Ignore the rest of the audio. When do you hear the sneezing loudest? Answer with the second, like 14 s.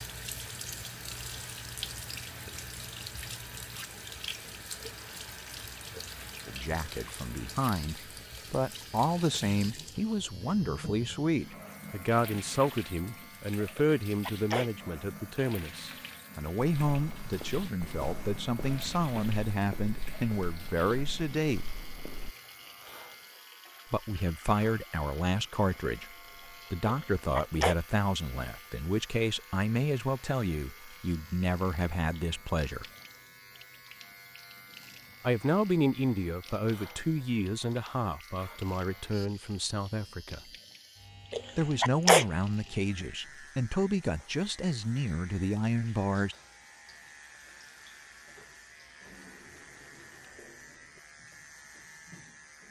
42 s.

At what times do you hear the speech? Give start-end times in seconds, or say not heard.
6.5-21.7, 23.9-32.9, 35.2-40.4, 41.5-46.4.